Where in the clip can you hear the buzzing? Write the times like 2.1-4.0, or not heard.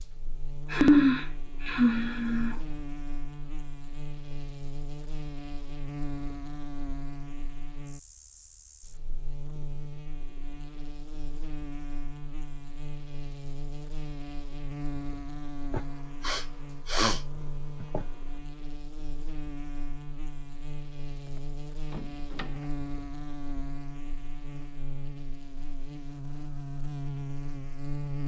0.0-28.2.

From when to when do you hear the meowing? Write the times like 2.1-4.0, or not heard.
not heard.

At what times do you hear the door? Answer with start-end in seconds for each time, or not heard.
21.2-22.8.